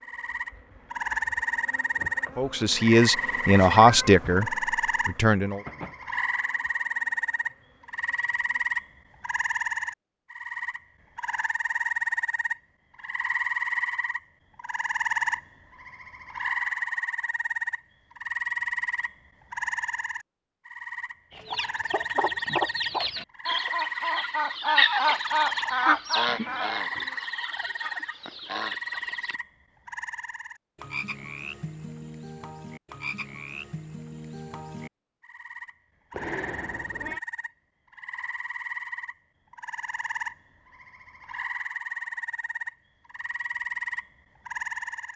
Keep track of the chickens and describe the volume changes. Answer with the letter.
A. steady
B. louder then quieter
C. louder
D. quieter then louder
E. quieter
B.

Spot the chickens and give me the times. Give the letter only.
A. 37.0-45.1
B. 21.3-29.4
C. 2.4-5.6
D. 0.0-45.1
B.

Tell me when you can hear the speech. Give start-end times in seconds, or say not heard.
2.4-5.6.